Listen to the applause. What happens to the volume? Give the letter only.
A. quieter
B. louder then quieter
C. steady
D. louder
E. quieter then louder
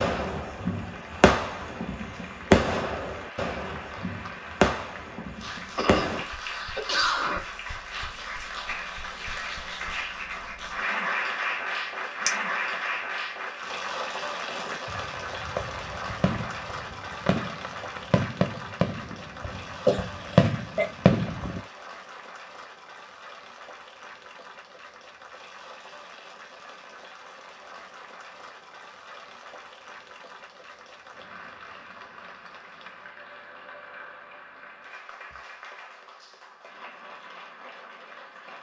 B.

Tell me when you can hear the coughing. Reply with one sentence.
You can hear the coughing from 5.8 to 7.4 s and from 19.9 to 20.9 s.